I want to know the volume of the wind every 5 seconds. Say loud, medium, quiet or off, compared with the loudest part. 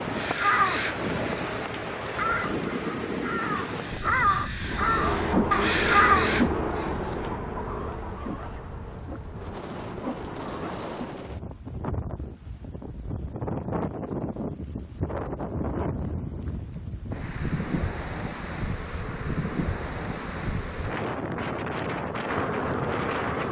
loud, medium, loud, loud, loud.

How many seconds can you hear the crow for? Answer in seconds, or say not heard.
7 s.